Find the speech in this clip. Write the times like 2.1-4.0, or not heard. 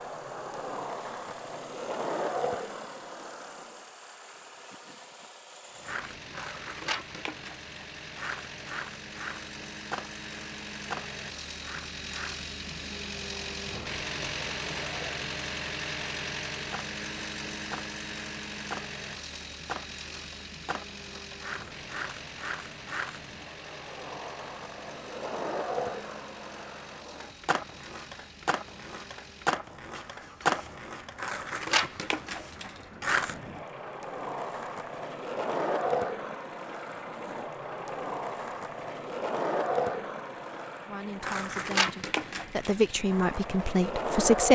40.9-44.5.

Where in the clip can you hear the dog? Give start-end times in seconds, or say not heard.
not heard.